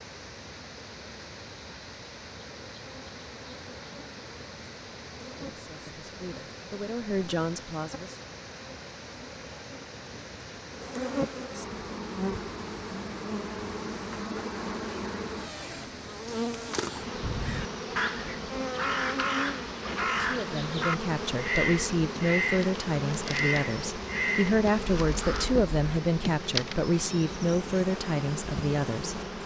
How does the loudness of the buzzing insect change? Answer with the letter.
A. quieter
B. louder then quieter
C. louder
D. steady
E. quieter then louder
C.